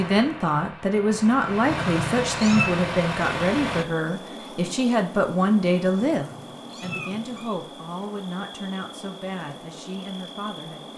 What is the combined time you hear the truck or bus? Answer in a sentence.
The truck or bus can be heard for 4 seconds in total.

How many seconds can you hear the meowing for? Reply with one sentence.
The meowing can be heard for 3 seconds in total.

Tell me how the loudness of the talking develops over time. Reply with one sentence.
The loudness of the talking goes down.